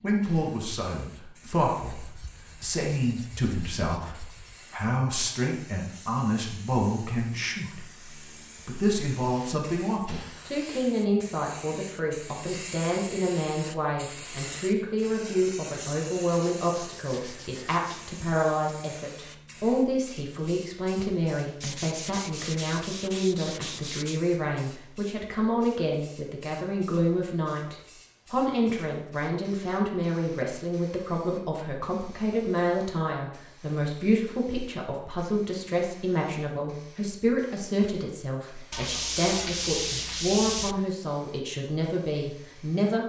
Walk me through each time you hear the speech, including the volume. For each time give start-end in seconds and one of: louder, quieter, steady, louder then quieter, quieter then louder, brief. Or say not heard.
0.0-43.0 steady.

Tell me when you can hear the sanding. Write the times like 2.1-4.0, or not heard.
1.8-4.7, 16.3-18.1, 21.6-24.2, 38.7-40.8.